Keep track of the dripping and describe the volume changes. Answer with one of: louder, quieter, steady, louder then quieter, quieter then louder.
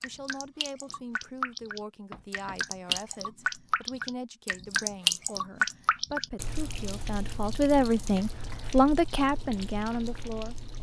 louder then quieter.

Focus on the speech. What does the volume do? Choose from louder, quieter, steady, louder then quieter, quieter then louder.
louder.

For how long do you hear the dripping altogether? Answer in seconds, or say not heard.
11 s.